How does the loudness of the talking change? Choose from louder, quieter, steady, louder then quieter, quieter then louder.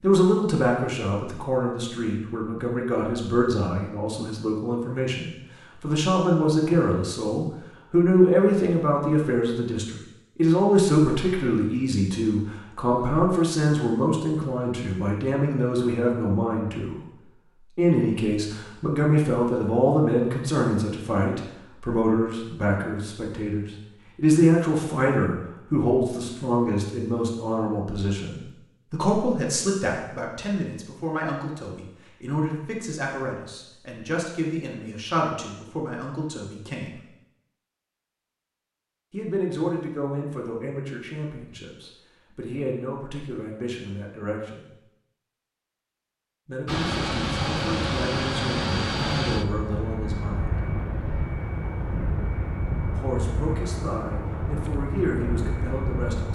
quieter.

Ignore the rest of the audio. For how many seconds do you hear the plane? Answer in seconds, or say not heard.
10 s.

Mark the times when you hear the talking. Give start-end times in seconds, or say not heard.
0.0-17.1, 17.8-37.0, 39.1-44.6, 46.5-50.5, 52.9-56.3.